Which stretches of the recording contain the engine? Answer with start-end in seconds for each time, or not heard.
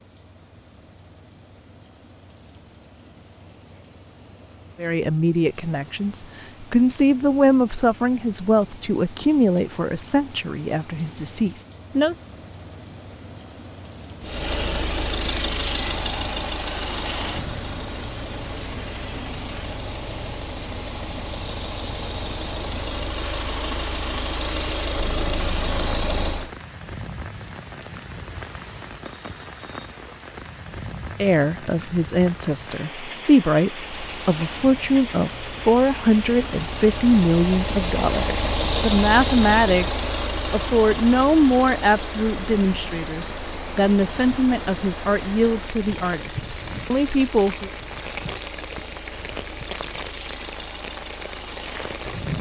14.2-26.5, 33.7-52.3.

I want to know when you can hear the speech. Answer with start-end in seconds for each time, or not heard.
4.8-12.2, 31.2-47.7.